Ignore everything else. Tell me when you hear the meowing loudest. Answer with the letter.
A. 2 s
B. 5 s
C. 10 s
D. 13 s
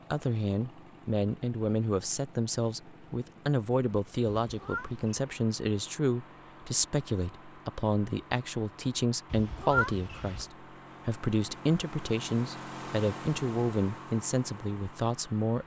C.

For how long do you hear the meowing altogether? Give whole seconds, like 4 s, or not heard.
2 s.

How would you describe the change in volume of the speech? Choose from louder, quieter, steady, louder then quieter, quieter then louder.
steady.